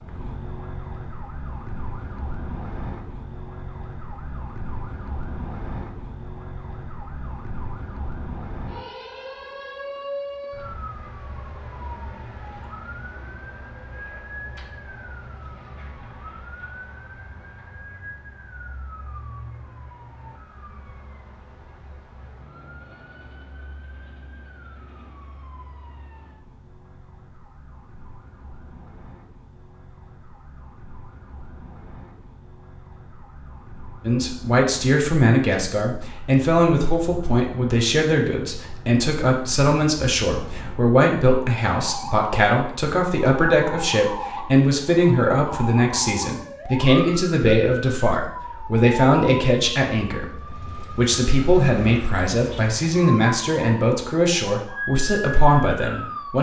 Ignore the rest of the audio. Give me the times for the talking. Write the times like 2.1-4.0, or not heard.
34.0-56.3.